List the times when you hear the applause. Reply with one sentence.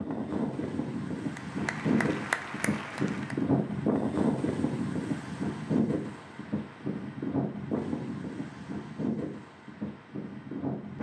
The applause can be heard from 1.4 to 3.4 s.